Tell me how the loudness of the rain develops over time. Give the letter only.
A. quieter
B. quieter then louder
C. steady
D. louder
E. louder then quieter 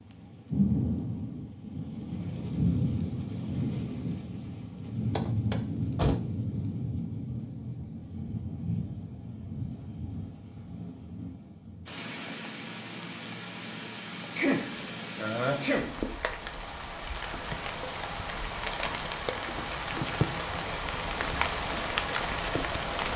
B.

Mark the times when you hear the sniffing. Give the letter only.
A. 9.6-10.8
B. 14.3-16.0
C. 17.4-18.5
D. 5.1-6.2
B.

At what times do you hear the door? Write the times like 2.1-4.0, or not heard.
5.1-6.2.